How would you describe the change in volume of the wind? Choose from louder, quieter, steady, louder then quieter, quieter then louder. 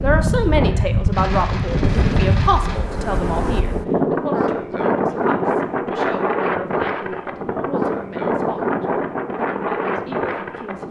steady.